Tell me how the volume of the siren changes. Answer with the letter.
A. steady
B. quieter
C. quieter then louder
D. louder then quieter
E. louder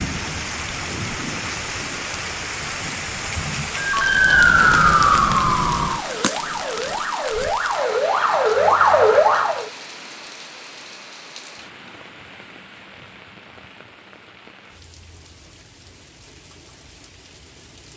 C.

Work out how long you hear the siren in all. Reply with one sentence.
You can hear the siren for 6 seconds altogether.